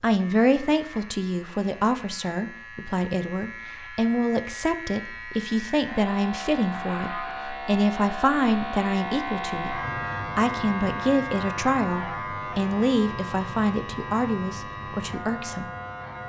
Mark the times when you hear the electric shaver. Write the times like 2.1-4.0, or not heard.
0.0-16.2.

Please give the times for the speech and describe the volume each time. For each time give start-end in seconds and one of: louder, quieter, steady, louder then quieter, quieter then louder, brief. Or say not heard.
0.0-15.7 steady.